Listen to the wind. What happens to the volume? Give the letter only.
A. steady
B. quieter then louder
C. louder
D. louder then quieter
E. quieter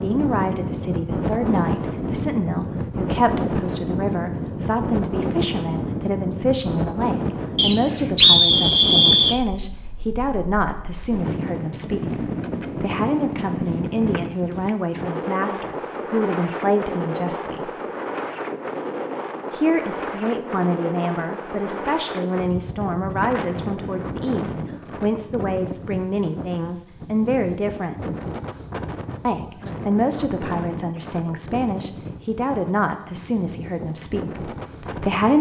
E.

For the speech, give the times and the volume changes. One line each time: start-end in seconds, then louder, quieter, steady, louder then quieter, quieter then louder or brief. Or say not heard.
0.0-17.8 steady
19.5-28.1 steady
29.2-35.3 quieter.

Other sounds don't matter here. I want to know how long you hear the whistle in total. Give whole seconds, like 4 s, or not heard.
2 s.